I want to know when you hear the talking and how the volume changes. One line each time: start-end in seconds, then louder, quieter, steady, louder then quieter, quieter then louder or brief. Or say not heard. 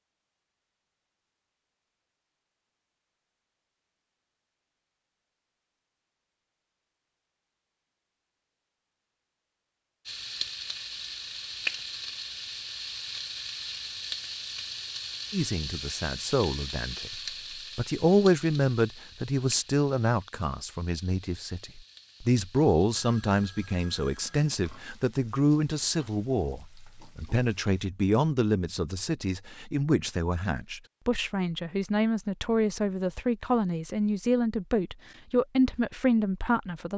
15.3-36.9 steady.